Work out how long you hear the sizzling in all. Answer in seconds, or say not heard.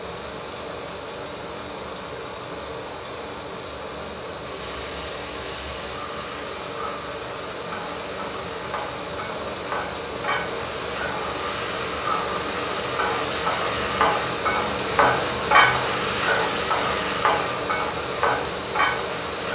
15 s.